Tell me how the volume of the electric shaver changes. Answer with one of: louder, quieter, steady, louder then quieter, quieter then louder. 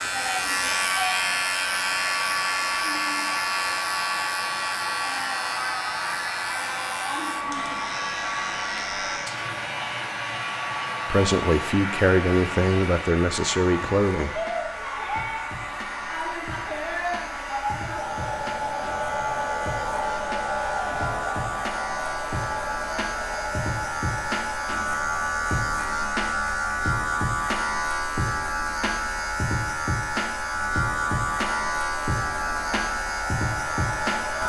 quieter then louder.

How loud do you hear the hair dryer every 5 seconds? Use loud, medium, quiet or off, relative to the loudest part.
loud, loud, loud, loud, loud, medium, medium.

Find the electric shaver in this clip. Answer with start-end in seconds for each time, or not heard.
0.0-34.4.